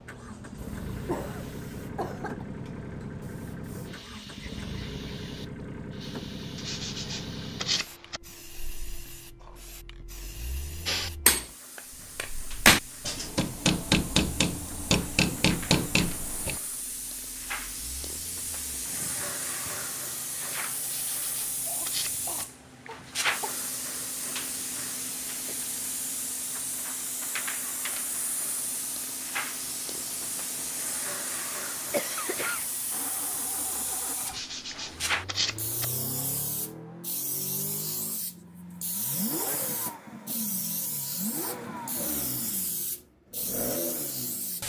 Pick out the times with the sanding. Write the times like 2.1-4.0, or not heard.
6.5-8.2, 20.8-22.3, 34.2-35.9.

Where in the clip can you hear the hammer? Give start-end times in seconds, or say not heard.
10.8-16.6.